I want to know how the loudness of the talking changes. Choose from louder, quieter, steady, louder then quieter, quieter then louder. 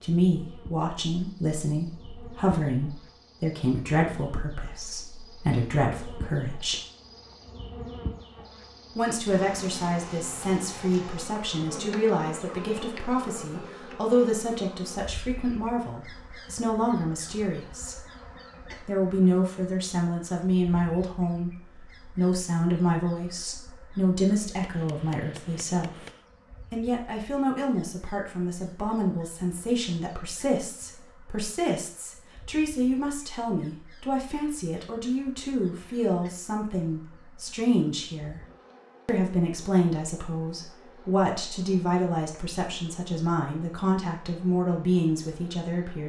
steady.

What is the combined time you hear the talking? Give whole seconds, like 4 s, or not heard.
42 s.